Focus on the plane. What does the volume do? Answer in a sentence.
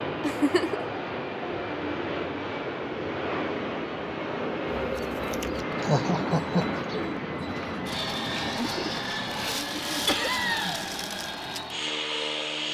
The volume of the plane stays about the same.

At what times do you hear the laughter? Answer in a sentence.
You can hear the laughter from 0.2 to 0.8 s, from 5.8 to 6.7 s and from 10.1 to 10.8 s.